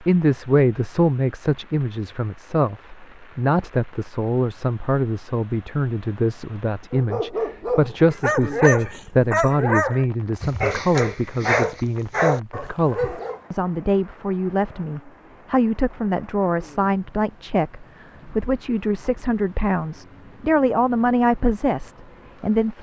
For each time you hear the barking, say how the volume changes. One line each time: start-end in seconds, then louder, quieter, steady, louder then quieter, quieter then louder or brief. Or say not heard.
6.9-13.4 steady.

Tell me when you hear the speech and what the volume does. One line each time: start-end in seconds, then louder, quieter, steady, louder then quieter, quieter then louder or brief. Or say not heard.
0.0-22.7 steady.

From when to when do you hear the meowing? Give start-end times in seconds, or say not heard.
not heard.